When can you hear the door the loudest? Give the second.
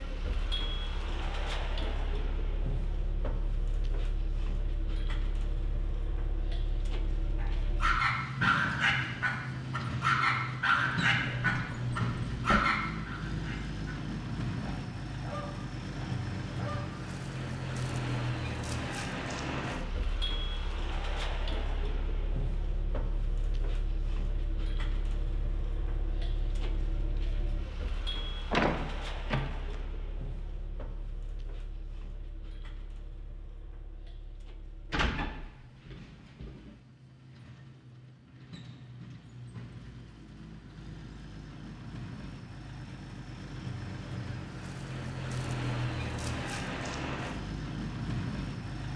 29 s.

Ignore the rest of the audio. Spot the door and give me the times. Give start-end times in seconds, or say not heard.
11.2-12.6, 28.5-29.8, 34.9-36.7.